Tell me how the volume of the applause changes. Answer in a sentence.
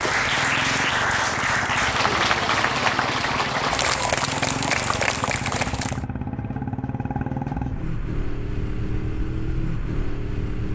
The volume of the applause stays about the same.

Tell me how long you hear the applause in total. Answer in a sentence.
The applause can be heard for 6 seconds in total.